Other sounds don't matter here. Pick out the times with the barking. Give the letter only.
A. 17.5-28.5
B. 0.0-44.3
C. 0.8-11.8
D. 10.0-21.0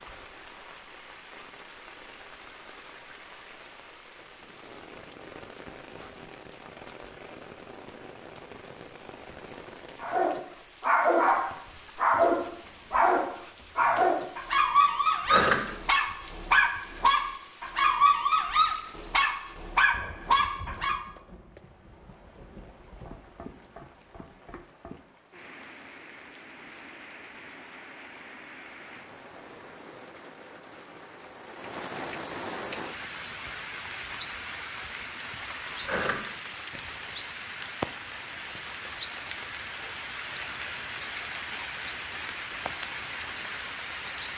D.